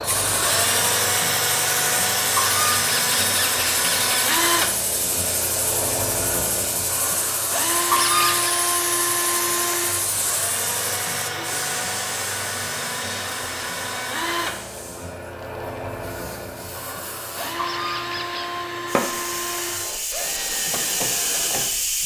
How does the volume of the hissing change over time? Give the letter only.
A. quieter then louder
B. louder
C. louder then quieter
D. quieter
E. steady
A.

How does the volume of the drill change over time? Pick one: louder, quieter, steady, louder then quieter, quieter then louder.
quieter.